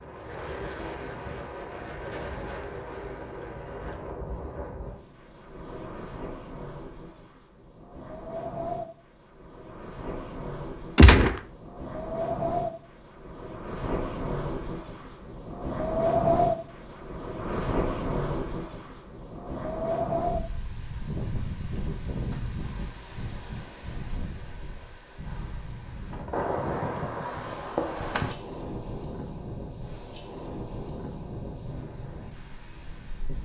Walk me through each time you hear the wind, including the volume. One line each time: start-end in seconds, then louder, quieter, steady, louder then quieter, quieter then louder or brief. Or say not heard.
0.0-33.4 louder then quieter.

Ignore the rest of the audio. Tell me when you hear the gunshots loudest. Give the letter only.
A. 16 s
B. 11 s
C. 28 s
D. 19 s
B.